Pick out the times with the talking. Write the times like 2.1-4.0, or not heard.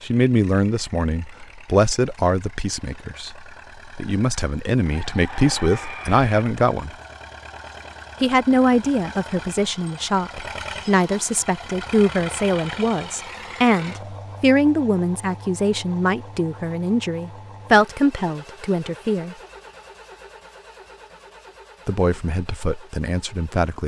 0.0-7.0, 8.2-19.4, 21.9-23.8.